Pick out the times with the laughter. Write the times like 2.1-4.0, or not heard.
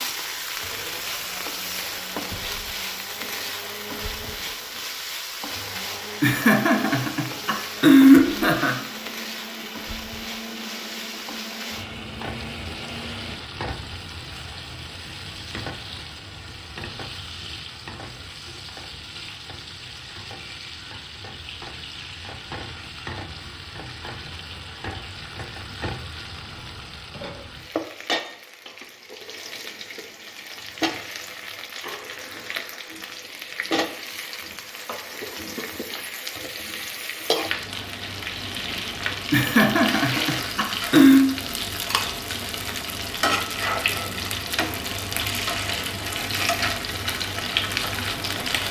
6.2-8.8, 39.3-41.2.